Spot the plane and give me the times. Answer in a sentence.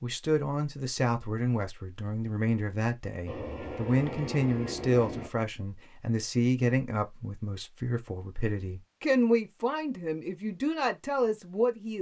You can hear the plane from 3.2 to 5.3 s.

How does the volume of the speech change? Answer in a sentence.
The volume of the speech stays about the same.